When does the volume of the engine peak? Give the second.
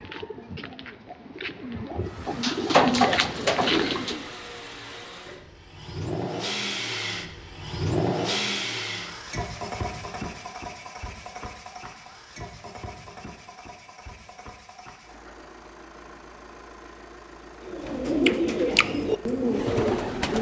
8 s.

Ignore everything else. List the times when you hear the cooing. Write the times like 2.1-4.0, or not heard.
0.0-4.2, 17.6-20.3.